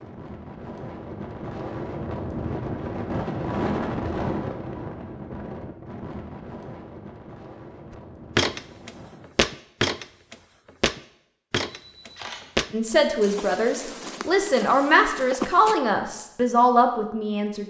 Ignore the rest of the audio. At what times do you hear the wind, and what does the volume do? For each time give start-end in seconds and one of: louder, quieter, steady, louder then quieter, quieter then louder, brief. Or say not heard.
0.0-9.2 louder then quieter.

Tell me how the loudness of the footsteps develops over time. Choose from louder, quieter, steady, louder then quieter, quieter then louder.
quieter.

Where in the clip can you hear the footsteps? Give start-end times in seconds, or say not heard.
8.3-15.8.